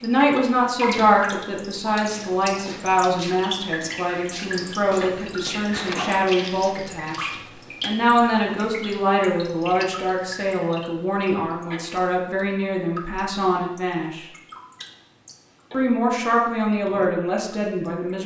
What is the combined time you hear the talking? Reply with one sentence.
The talking can be heard for 17 seconds in total.